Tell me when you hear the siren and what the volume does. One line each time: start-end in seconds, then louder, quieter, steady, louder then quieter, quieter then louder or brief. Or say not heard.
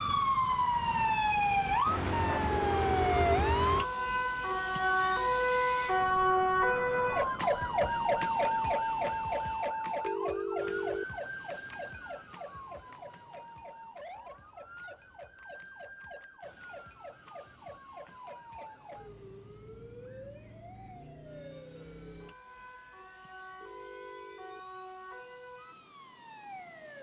0.0-26.9 quieter.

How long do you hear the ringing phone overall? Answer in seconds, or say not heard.
3 s.